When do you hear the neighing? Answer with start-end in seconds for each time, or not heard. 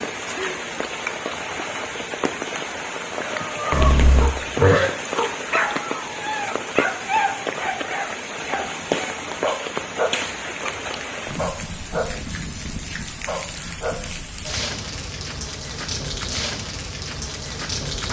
3.7-4.9.